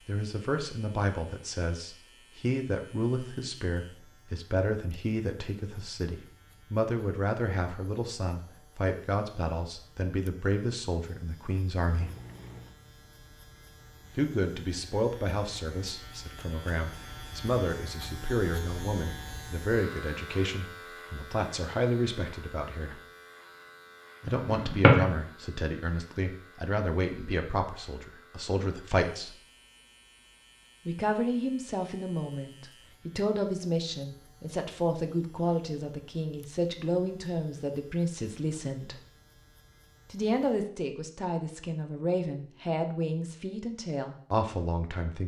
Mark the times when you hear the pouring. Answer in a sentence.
You can hear the pouring from 11.8 to 12.8 s.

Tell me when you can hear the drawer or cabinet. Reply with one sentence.
You can hear the drawer or cabinet from 24.4 to 25.1 s.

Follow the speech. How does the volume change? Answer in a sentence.
The volume of the speech stays about the same.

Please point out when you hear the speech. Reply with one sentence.
The speech can be heard from 0.1 to 12.1 s, from 14.2 to 23.0 s, from 24.2 to 29.4 s, from 30.9 to 39.0 s and from 40.1 to 45.2 s.